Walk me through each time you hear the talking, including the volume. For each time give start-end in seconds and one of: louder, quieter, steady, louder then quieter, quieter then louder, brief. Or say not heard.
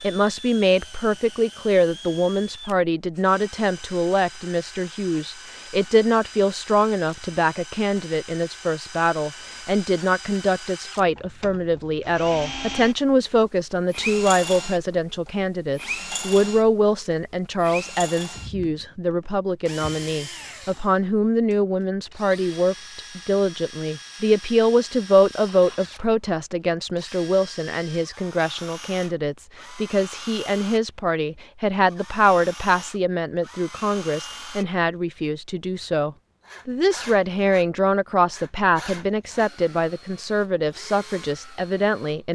0.0-42.3 steady.